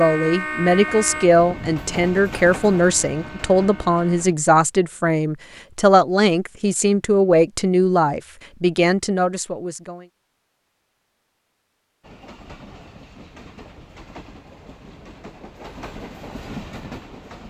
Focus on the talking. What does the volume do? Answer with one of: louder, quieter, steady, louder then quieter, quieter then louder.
steady.